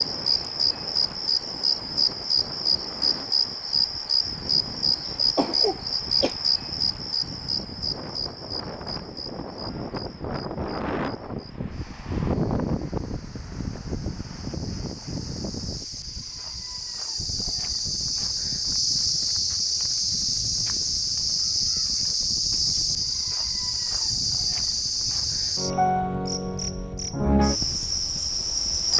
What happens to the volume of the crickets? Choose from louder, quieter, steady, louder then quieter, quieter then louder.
quieter then louder.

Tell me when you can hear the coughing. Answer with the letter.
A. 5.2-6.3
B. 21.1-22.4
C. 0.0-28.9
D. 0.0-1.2
A.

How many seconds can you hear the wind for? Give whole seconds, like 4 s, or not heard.
29 s.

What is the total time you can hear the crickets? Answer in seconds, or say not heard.
29 s.